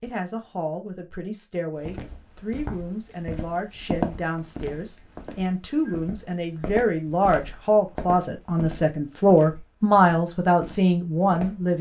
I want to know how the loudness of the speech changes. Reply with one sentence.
The loudness of the speech goes up.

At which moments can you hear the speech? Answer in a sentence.
The speech can be heard from 0.0 to 11.7 s.